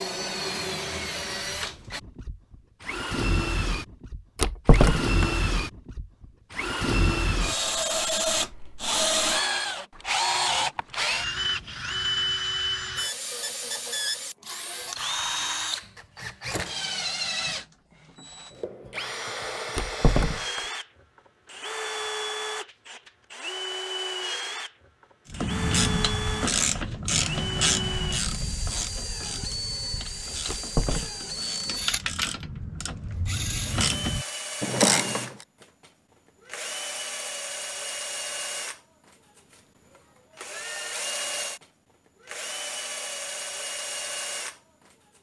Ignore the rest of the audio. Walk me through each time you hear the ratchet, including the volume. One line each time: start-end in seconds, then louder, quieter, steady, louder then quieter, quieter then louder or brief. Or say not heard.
25.3-35.5 quieter then louder.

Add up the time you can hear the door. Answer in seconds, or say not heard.
2 s.